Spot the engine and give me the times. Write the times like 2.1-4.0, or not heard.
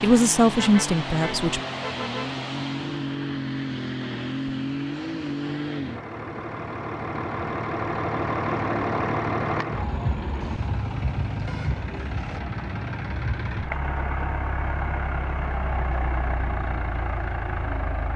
0.0-18.1.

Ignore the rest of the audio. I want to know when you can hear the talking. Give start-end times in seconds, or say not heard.
0.0-1.6.